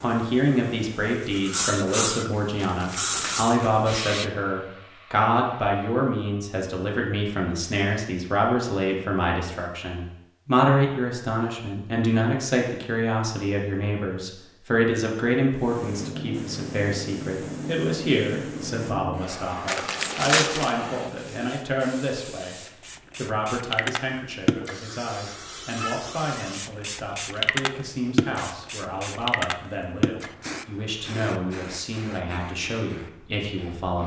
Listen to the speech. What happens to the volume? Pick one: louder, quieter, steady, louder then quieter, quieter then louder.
quieter.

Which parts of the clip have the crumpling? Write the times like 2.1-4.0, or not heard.
2.5-3.5, 19.6-20.7.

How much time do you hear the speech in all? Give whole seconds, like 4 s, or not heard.
34 s.